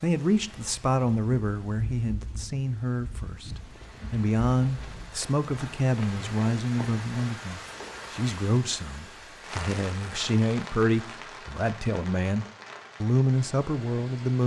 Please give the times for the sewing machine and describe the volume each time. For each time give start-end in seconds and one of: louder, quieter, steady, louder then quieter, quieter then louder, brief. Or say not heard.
not heard.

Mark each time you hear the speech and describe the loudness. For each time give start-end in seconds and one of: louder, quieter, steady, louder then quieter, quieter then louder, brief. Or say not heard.
0.0-14.4 steady.